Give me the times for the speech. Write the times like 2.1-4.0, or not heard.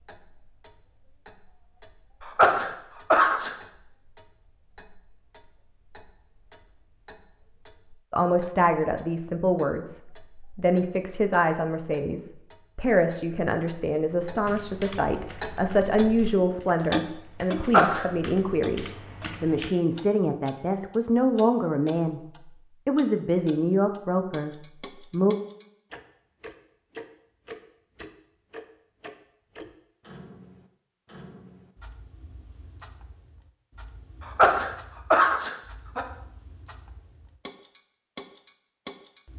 8.1-22.2, 22.9-25.4.